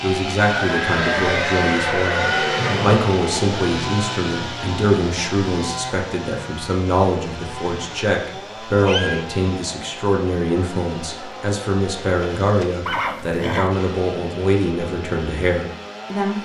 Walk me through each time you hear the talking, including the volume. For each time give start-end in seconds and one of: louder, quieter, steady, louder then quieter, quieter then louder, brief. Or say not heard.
0.0-16.4 steady.